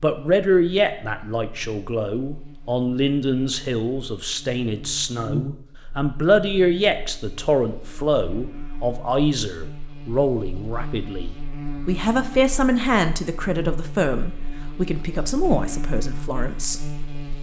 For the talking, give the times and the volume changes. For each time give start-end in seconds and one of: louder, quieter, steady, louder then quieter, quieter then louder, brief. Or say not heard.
0.0-16.9 steady.